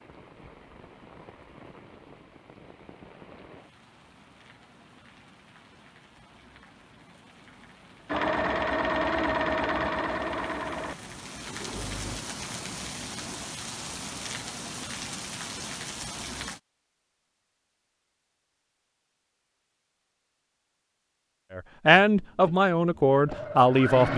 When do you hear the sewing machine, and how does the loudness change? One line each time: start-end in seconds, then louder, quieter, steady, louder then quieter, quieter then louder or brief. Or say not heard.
8.1-12.2 quieter
21.9-24.1 brief.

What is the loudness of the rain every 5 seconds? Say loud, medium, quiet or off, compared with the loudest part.
quiet, quiet, loud, loud, off.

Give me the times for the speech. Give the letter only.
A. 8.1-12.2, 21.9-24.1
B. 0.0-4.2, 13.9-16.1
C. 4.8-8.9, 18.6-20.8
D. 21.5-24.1
D.